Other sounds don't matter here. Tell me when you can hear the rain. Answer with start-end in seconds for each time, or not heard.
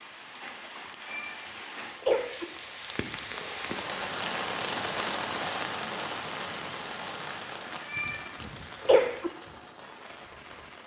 0.0-10.8.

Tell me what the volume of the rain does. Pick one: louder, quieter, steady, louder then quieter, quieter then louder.
louder then quieter.